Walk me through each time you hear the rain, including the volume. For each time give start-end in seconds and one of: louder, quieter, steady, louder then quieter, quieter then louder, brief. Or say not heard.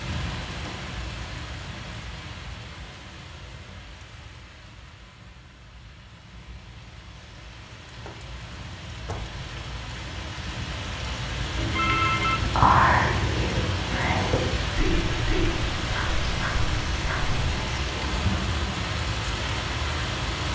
0.0-20.4 quieter then louder.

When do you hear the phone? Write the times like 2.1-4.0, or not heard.
11.6-12.4.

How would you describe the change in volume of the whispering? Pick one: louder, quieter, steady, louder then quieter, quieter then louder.
quieter.